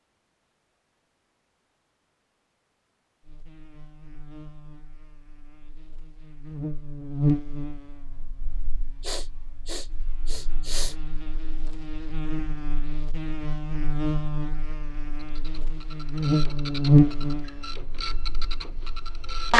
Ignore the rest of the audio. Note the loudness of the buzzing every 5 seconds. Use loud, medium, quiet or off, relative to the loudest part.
quiet, medium, medium, loud.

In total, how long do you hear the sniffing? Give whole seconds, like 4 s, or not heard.
2 s.